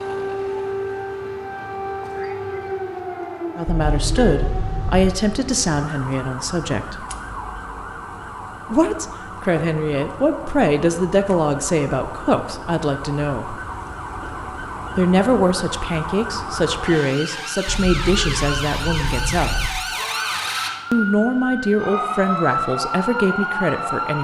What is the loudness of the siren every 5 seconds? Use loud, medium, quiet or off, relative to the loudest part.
loud, medium, medium, loud, loud.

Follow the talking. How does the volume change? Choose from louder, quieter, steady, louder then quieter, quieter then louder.
steady.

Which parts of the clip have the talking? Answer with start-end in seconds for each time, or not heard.
3.5-7.0, 8.7-13.6, 14.9-19.6, 20.9-24.2.